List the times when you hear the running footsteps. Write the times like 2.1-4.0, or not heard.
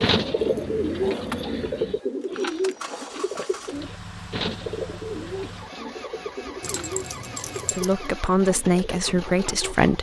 not heard.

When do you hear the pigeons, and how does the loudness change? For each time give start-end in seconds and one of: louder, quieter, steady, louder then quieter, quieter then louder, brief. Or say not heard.
0.0-9.8 quieter.